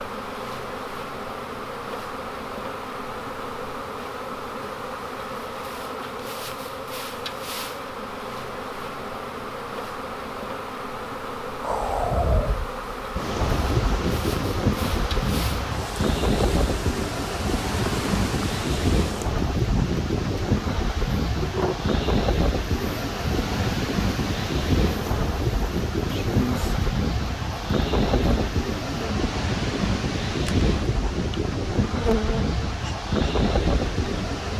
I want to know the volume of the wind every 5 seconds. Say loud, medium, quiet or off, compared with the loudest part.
off, off, loud, loud, loud, loud, loud.